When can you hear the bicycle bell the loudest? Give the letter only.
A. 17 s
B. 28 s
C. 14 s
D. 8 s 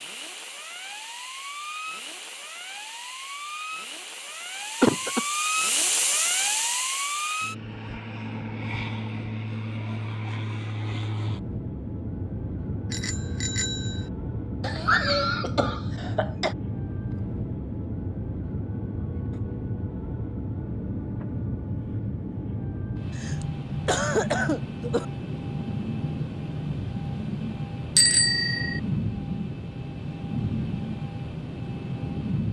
B.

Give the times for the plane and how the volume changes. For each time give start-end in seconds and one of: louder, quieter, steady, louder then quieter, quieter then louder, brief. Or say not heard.
0.0-32.4 steady.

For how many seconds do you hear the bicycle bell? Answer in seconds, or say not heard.
2 s.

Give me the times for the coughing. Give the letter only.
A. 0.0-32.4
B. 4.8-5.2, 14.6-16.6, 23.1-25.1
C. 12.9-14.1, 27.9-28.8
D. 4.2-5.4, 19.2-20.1
B.